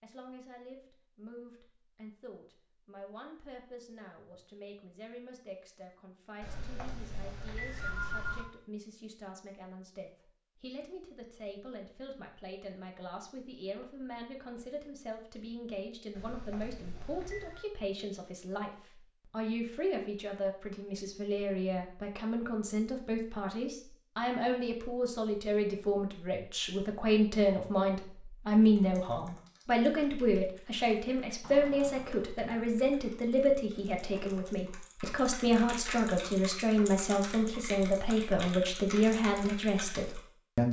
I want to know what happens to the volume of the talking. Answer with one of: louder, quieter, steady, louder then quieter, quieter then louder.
louder.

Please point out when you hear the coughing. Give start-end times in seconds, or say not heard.
not heard.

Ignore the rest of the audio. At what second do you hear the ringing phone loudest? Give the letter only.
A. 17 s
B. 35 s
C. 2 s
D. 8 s
D.